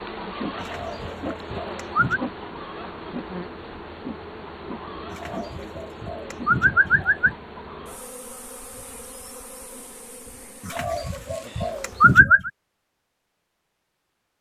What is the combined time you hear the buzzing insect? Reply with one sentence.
The buzzing insect can be heard for 12 seconds in total.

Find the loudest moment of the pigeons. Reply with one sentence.
The volume of the pigeons peaks at 12 seconds.